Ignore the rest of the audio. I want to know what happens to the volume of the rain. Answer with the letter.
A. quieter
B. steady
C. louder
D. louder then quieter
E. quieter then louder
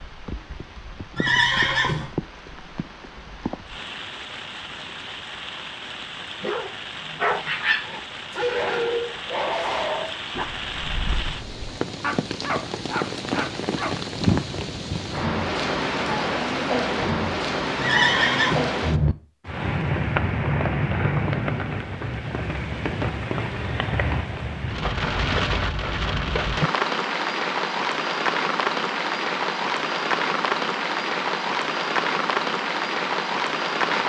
C.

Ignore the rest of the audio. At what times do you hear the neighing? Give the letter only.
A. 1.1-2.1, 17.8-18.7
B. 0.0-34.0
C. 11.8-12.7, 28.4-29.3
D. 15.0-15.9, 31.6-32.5
A.